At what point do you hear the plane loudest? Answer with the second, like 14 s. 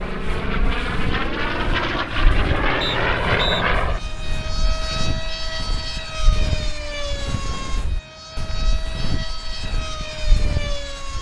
3 s.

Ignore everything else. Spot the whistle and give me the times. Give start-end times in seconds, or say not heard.
2.8-3.6.